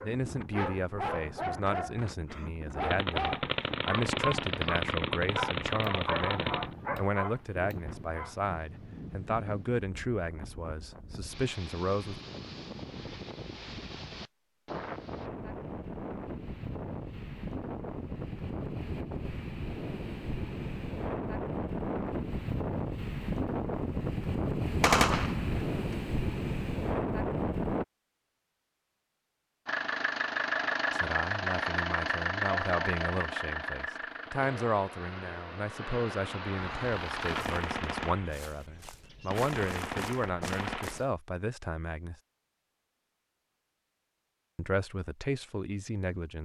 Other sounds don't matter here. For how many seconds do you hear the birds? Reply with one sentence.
You can't hear the birds here.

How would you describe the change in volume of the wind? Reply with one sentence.
The volume of the wind goes up.